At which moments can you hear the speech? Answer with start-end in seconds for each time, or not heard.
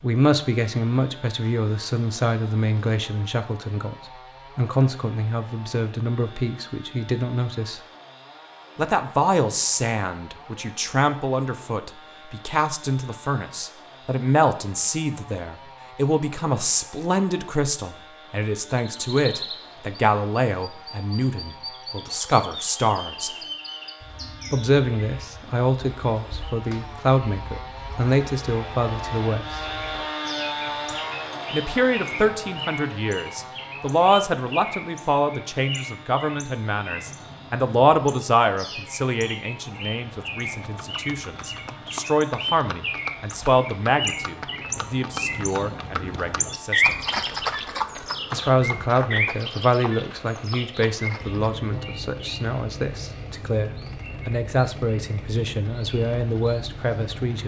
0.0-4.0, 4.5-7.8, 8.8-23.3, 24.5-29.6, 31.5-47.0, 48.3-57.4.